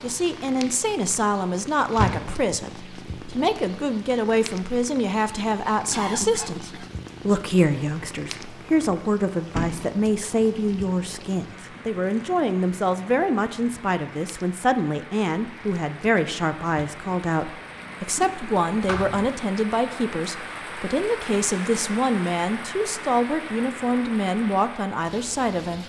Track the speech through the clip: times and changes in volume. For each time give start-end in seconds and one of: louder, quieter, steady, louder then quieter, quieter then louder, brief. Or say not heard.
0.0-25.8 steady.